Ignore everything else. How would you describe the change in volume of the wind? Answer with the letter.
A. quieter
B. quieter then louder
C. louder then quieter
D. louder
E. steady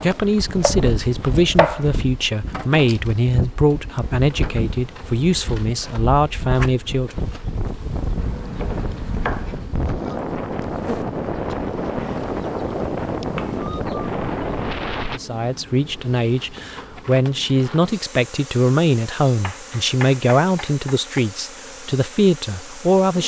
D.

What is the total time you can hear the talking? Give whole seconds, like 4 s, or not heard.
15 s.